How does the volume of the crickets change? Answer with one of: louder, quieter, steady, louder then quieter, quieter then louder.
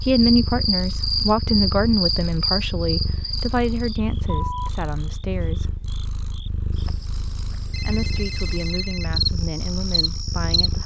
quieter then louder.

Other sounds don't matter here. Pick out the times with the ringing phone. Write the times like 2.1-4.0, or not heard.
7.7-9.1.